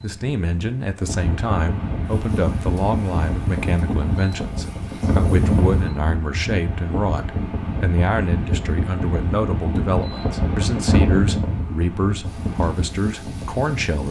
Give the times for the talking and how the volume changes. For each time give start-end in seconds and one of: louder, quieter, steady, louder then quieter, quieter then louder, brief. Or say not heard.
0.0-14.0 steady.